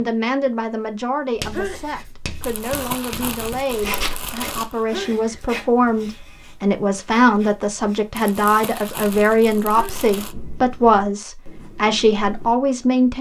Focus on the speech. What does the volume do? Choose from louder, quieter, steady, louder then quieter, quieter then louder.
louder.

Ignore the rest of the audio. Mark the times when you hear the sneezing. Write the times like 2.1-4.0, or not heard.
1.5-2.1, 4.9-5.5, 9.7-10.1.